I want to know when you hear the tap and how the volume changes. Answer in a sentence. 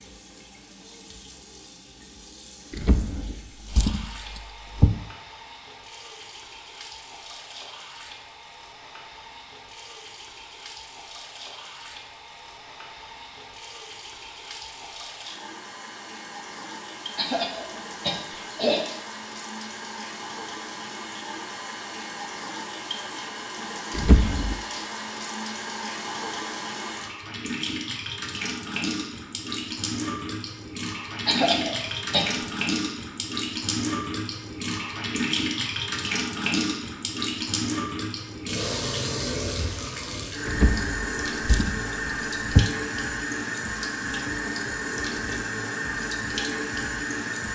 The tap can be heard from 0.0 to 47.5 s, getting louder.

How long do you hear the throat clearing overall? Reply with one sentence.
You can hear the throat clearing for 3 seconds altogether.